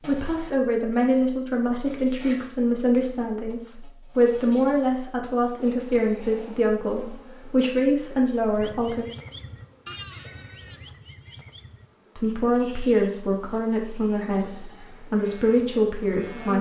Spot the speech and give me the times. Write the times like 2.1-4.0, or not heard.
0.1-9.1, 12.2-16.5.